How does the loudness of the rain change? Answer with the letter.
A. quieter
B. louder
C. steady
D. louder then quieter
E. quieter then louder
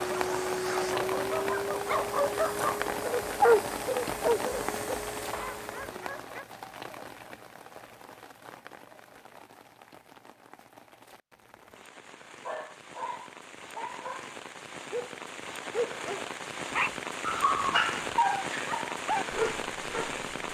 E.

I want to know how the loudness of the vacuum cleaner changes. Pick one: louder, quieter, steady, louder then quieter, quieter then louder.
quieter.